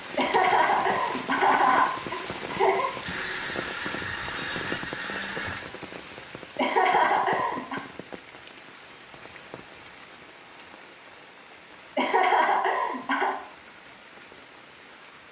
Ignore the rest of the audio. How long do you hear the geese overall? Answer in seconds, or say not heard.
3 s.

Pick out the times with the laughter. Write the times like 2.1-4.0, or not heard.
0.1-2.9, 6.5-7.8, 11.9-13.3.